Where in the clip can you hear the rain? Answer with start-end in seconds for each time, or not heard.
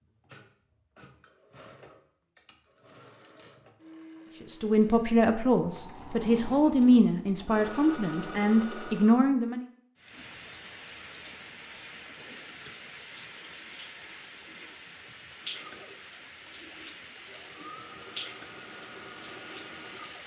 9.9-20.2.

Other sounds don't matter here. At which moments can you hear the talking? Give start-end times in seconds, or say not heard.
4.5-9.7.